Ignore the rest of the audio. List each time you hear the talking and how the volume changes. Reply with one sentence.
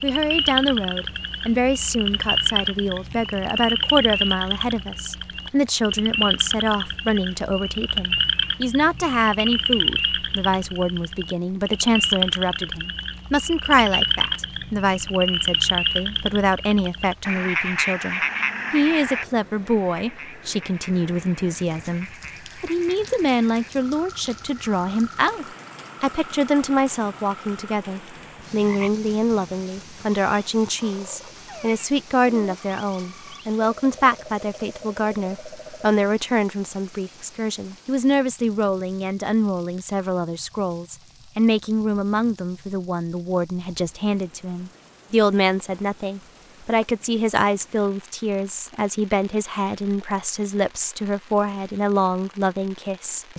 The talking can be heard from 0.0 to 53.3 s, at a steady volume.